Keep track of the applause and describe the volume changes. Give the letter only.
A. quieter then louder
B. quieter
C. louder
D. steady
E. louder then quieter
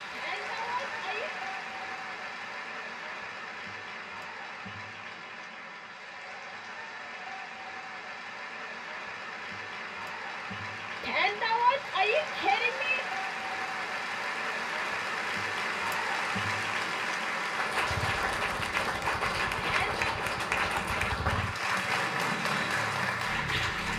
C.